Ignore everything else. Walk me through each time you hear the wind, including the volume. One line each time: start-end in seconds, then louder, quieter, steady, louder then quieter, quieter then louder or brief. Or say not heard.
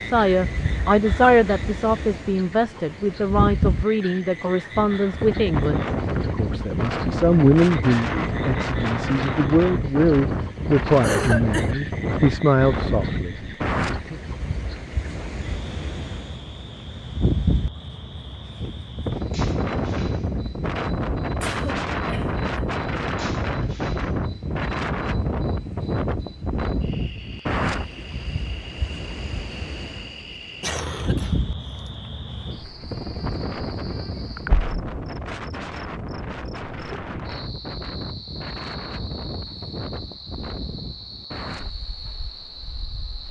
0.0-43.2 quieter.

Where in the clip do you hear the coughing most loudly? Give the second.
11 s.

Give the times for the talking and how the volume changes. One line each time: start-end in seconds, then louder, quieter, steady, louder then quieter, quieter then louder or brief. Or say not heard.
0.0-14.2 steady.